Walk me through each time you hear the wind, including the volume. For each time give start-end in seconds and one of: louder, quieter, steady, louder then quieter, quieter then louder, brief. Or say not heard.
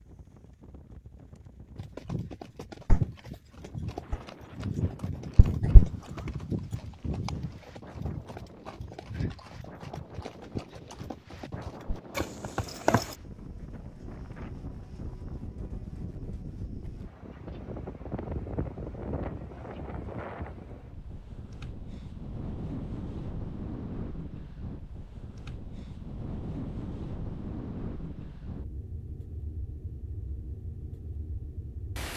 0.0-32.1 louder.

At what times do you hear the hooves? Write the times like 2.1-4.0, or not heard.
1.8-13.2.